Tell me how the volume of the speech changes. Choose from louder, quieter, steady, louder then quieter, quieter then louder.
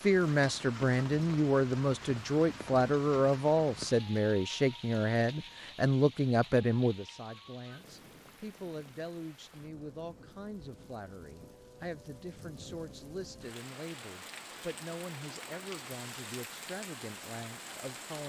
quieter.